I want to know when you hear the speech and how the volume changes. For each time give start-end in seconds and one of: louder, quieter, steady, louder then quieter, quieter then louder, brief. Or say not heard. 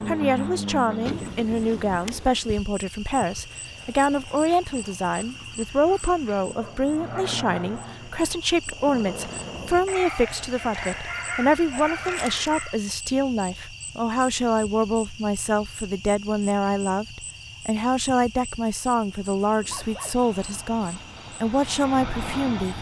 0.1-22.7 steady.